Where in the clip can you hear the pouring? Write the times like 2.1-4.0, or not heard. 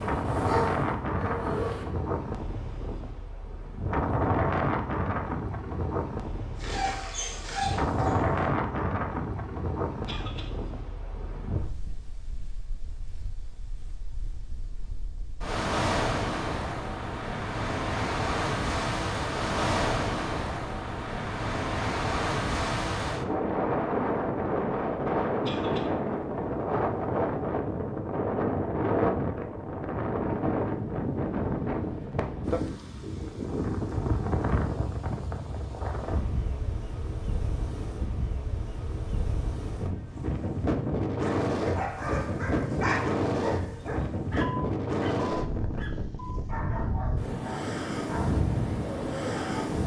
not heard.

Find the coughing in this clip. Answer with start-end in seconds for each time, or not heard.
10.1-10.5, 25.4-25.9.